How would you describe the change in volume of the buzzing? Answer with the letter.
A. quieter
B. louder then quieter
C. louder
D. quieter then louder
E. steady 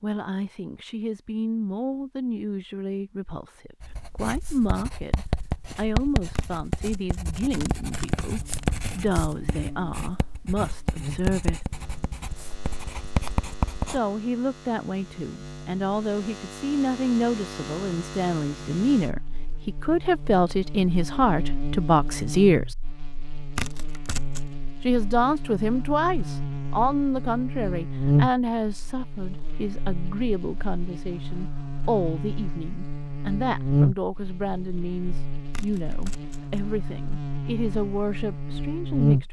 C.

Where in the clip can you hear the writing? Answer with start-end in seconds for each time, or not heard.
3.8-14.0.